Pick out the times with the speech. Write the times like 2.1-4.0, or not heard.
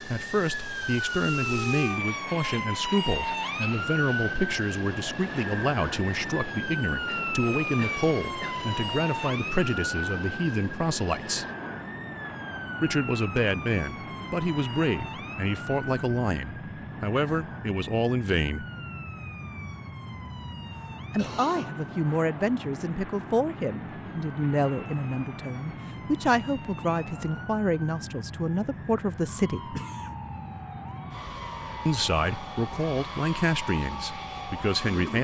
0.0-11.4, 12.8-18.6, 21.1-29.8, 31.9-35.1.